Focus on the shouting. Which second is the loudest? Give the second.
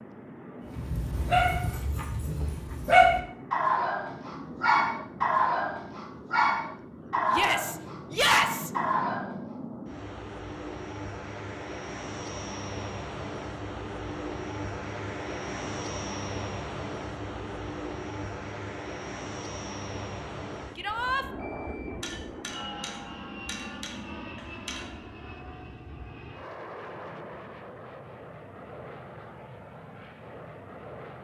8 s.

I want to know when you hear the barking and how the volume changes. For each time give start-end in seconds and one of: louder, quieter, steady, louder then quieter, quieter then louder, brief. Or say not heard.
0.8-9.3 louder then quieter.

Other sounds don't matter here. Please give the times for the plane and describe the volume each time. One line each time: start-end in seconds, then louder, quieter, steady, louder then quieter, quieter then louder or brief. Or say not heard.
0.0-31.1 louder then quieter.